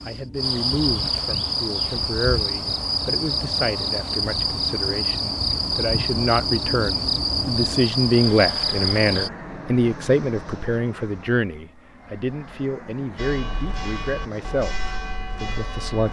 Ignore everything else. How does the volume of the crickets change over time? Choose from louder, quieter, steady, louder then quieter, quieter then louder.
steady.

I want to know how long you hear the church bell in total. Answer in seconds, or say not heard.
3 s.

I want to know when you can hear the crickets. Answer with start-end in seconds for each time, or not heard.
0.0-9.3.